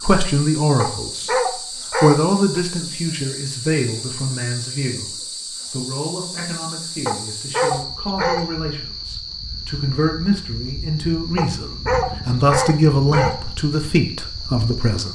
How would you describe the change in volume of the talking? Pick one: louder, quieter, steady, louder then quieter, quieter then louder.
quieter then louder.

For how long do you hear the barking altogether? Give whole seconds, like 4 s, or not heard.
5 s.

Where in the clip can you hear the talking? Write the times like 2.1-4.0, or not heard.
0.0-15.0.